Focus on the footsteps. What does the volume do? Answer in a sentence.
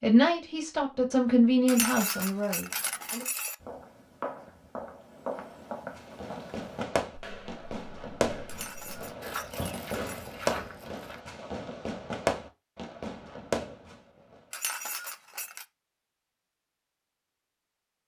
The loudness of the footsteps goes down, then up.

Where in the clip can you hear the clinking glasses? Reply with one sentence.
You can hear the clinking glasses from 1.6 to 3.5 s, from 8.4 to 10.3 s and from 14.5 to 15.7 s.